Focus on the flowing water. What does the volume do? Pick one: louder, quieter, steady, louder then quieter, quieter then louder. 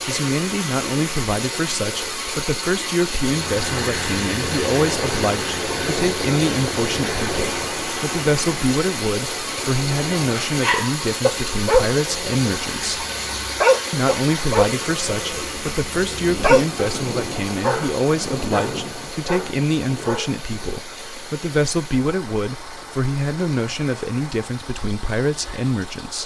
quieter.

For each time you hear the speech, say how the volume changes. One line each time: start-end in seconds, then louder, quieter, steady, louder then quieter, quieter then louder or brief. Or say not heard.
0.1-13.1 steady
13.9-26.2 steady.